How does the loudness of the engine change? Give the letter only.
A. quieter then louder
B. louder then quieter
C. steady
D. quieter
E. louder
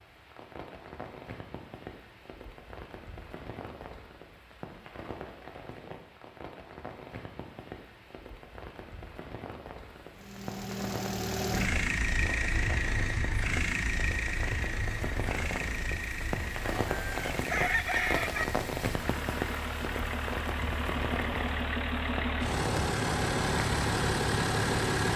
A.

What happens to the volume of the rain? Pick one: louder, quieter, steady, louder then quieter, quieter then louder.
louder.